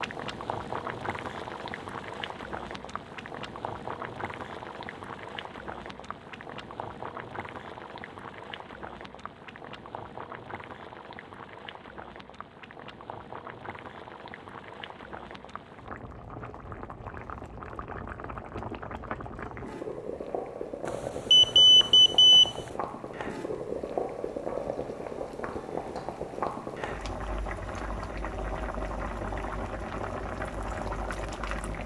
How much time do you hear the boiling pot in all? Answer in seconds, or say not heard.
32 s.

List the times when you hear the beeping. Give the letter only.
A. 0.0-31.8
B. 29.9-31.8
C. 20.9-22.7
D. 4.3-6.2
C.